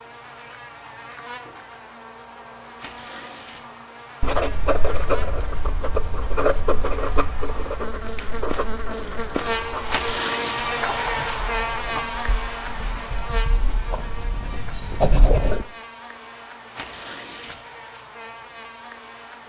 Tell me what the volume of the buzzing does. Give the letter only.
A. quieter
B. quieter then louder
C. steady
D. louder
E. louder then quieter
E.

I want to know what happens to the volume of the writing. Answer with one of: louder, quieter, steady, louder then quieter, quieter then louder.
quieter then louder.